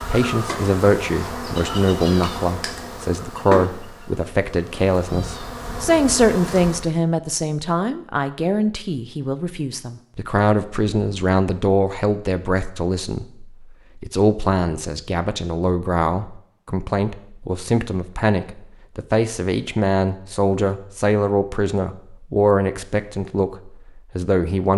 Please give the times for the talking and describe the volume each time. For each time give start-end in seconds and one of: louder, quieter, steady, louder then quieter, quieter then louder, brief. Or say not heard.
0.1-24.7 steady.